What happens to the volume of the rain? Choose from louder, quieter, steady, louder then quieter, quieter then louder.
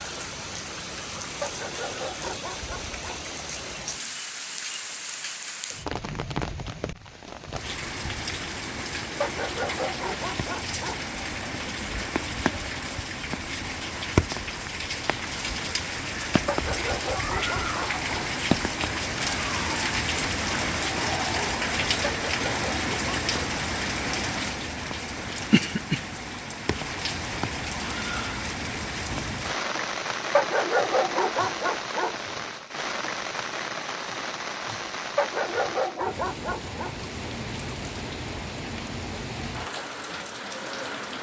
louder then quieter.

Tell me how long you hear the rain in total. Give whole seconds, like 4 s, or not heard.
41 s.